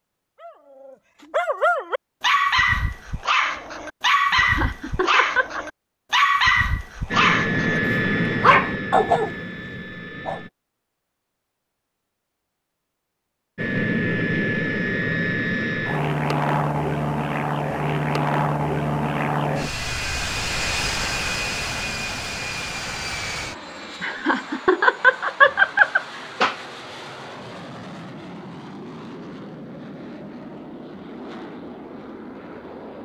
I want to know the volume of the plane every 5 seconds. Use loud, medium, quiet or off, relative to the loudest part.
off, loud, loud, loud, medium, quiet, quiet.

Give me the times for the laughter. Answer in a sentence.
You can hear the laughter from 4.3 to 5.7 s and from 24.0 to 26.6 s.